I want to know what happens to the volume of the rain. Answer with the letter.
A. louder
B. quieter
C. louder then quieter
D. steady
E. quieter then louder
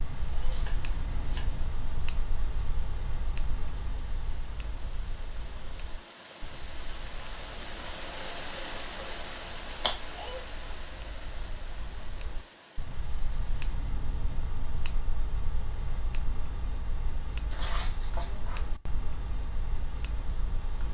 C.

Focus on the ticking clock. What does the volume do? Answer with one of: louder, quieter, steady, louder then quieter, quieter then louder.
quieter then louder.